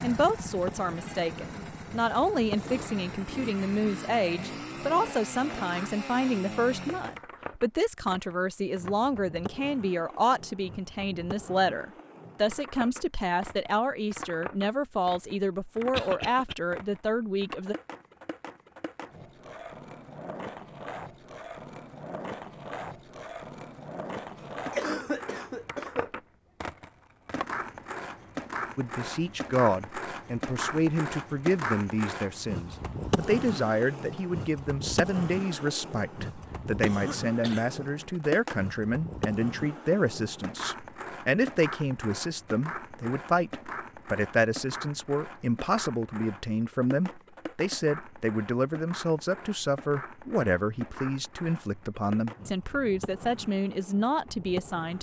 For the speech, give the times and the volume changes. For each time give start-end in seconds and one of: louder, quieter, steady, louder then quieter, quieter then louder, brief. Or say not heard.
0.0-17.8 steady
28.8-54.9 steady.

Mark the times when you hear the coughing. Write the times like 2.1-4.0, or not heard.
15.9-16.6, 24.4-26.1, 36.8-37.7.